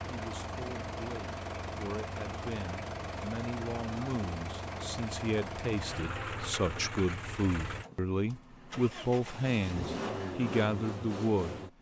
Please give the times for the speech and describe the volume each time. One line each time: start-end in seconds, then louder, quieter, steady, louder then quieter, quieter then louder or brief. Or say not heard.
0.0-11.7 louder.